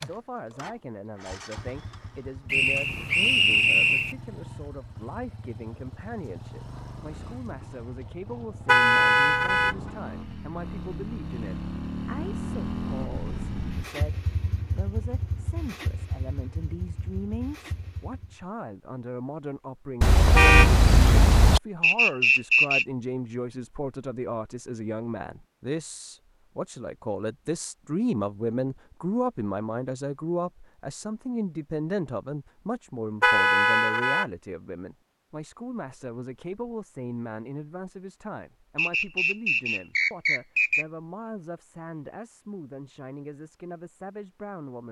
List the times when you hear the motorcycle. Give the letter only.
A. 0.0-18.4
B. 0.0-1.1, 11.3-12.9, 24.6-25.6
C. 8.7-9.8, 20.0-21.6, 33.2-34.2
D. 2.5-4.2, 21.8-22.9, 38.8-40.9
A.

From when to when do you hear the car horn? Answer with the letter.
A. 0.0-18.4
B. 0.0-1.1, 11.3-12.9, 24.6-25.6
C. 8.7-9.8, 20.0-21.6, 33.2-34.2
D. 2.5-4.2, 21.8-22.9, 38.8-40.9
C.